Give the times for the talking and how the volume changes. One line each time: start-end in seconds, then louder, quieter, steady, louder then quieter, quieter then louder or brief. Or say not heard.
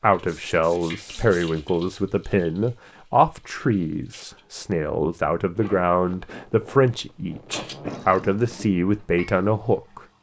0.0-10.0 steady.